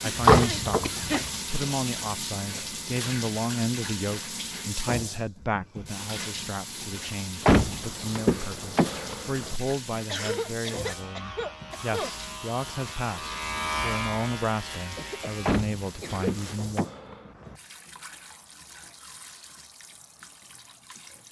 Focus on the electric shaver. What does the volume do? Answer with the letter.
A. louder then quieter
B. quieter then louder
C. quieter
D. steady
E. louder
A.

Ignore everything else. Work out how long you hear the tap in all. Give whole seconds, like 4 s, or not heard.
21 s.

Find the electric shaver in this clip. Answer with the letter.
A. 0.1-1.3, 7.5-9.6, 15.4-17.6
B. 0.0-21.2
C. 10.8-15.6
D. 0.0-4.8
C.